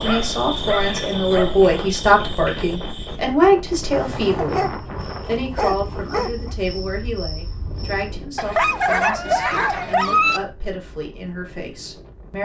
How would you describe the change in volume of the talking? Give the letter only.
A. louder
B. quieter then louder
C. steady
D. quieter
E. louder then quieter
D.